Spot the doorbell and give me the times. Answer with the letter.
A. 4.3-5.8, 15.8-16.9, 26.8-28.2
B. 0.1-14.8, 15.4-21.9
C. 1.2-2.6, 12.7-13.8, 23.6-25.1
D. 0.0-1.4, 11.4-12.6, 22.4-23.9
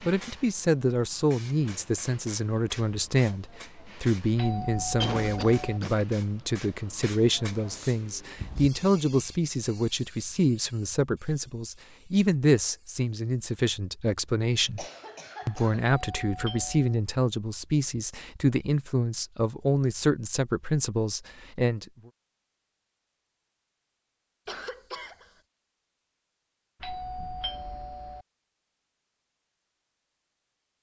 A.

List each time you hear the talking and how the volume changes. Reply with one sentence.
You can hear the talking from 0.1 to 14.8 s, at a steady volume; and from 15.4 to 21.9 s, at a steady volume.